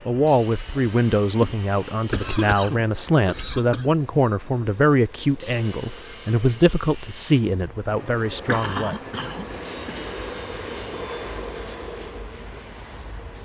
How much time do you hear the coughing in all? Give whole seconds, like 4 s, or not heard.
4 s.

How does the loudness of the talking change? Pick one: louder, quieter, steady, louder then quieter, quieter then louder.
steady.